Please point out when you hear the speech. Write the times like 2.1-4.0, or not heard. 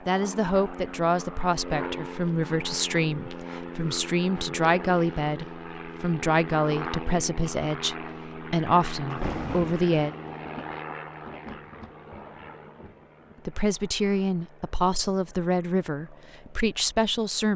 0.1-10.1, 13.4-17.5.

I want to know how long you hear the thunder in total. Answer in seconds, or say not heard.
4 s.